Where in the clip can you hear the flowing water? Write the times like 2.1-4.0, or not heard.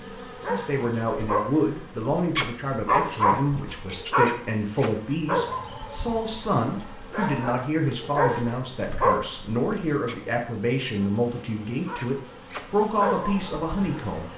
not heard.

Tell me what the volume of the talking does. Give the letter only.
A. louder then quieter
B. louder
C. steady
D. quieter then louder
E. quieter
C.